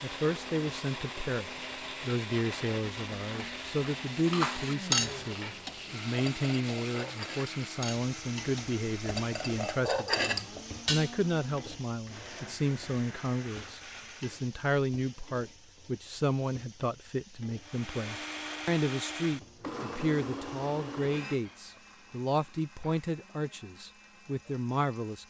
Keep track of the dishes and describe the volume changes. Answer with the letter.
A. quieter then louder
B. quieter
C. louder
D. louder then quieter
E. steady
A.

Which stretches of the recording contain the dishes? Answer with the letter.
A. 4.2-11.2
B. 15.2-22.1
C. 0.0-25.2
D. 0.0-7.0
A.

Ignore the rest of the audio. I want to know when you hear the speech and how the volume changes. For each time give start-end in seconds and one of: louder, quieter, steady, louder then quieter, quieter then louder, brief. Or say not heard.
0.0-25.2 steady.